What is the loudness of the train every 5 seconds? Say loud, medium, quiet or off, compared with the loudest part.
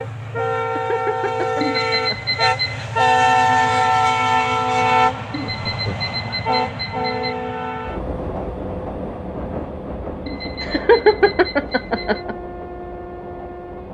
loud, medium, quiet.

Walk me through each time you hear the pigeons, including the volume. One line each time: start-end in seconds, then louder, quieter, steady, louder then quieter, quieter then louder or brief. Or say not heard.
not heard.